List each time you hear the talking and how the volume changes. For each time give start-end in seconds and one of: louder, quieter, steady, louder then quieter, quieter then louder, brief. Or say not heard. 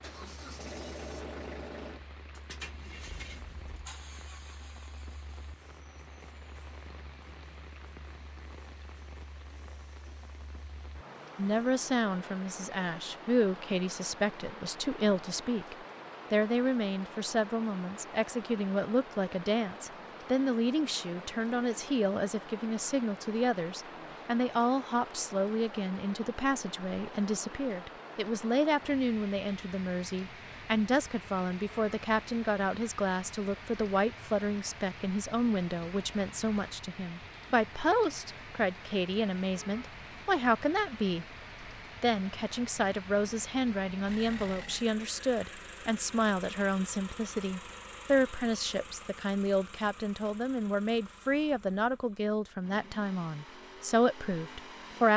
11.3-41.2 steady
42.0-55.1 steady.